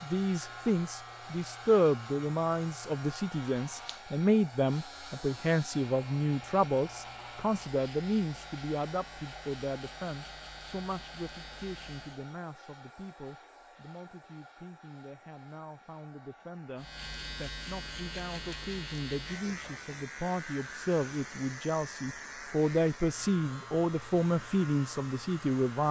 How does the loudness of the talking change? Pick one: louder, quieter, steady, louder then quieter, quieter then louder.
quieter then louder.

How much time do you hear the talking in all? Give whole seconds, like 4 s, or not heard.
26 s.